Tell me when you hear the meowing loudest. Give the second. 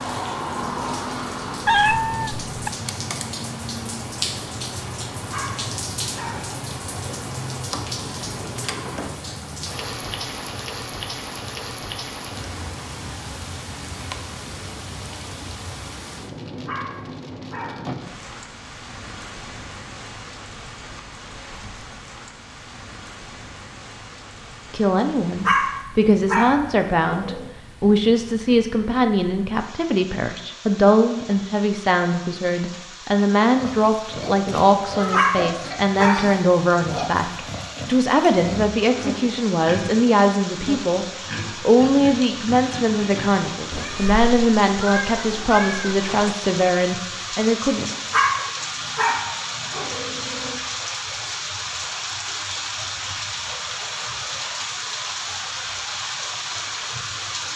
2 s.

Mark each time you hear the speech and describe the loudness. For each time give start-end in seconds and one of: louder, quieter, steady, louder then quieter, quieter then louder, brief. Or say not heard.
24.7-47.9 steady.